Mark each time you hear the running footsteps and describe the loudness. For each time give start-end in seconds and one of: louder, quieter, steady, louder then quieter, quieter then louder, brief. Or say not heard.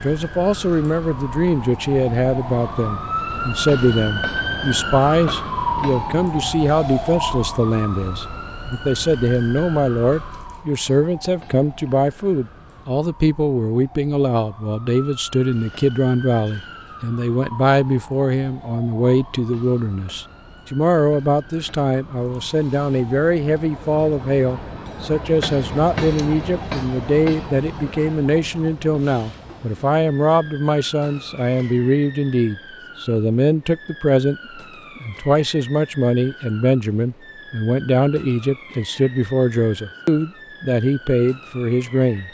not heard.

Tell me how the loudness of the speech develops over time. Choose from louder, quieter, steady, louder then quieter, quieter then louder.
steady.